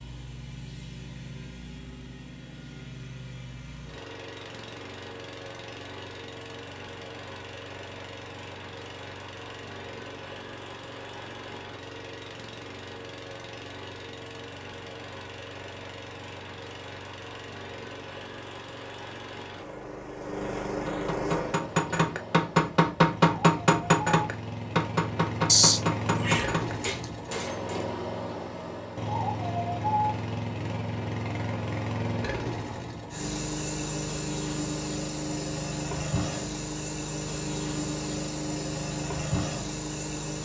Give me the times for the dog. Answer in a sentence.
The dog can't be heard in this clip.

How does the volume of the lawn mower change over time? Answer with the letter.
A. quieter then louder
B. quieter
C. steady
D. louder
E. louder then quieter
D.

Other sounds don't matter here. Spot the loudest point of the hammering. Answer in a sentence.
The volume of the hammering peaks at 23 seconds.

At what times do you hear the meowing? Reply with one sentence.
You can hear the meowing from 25.4 to 27.1 s.